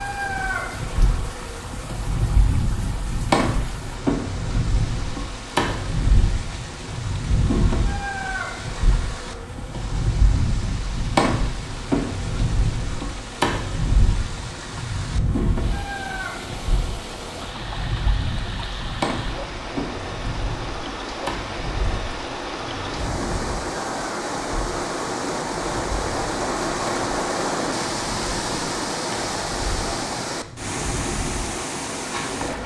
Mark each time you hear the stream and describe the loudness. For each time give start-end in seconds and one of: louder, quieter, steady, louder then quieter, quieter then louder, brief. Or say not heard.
0.0-32.6 louder.